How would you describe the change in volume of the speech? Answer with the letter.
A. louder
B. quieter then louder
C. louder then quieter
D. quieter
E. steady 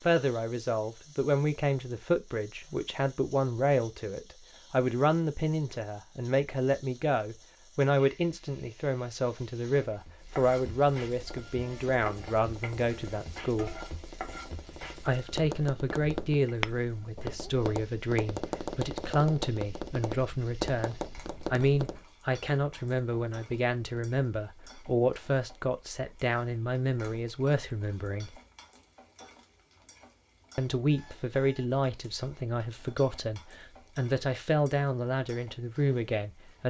E.